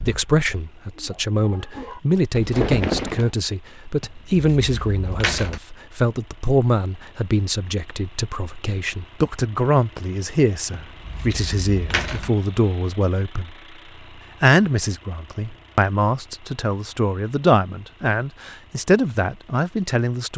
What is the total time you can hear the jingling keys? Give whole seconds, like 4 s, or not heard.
3 s.